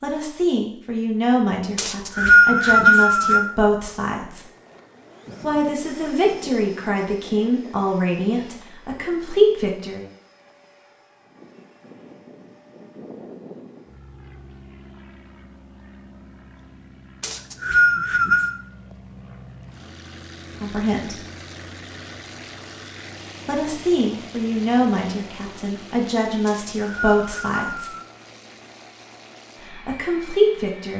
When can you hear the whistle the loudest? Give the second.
2 s.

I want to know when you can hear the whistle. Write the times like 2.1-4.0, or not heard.
1.8-3.5, 17.2-18.6, 26.4-28.1.